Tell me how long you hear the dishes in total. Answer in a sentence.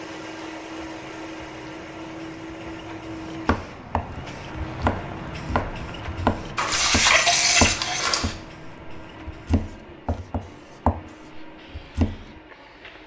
You can hear the dishes for 2 seconds altogether.